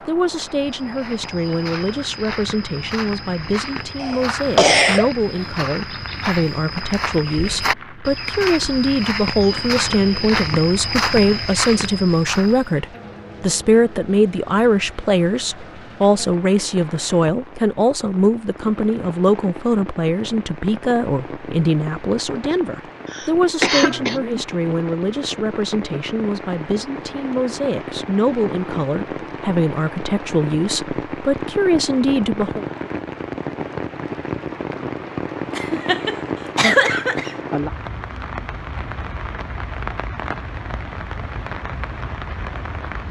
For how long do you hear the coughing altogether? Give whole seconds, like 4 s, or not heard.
4 s.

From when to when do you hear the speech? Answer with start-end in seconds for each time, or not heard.
0.1-32.6.